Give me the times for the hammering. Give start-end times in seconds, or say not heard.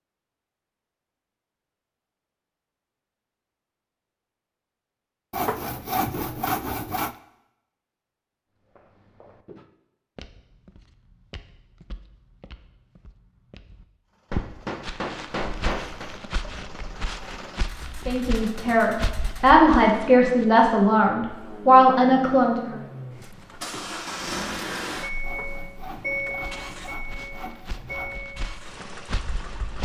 14.3-16.1.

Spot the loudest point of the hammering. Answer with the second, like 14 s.
16 s.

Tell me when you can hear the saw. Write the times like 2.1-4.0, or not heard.
5.3-7.2, 25.2-28.2.